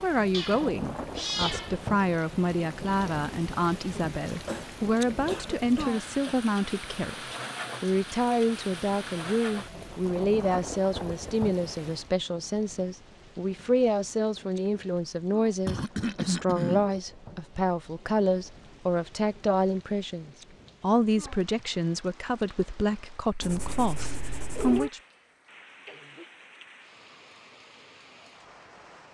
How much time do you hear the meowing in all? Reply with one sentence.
You can hear the meowing for 3 seconds altogether.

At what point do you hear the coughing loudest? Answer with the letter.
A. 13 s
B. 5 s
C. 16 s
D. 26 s
C.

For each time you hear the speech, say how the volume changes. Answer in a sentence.
The speech can be heard from 0.0 to 25.0 s, at a steady volume.